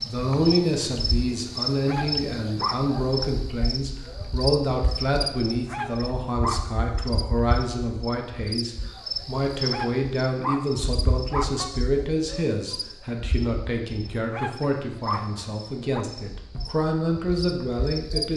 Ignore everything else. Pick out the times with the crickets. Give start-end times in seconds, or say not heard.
0.0-18.3.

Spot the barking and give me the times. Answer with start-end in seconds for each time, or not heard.
1.6-3.0, 5.5-6.8, 9.5-11.7, 14.1-16.1.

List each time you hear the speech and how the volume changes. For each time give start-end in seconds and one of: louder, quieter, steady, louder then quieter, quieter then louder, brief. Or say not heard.
0.0-18.3 steady.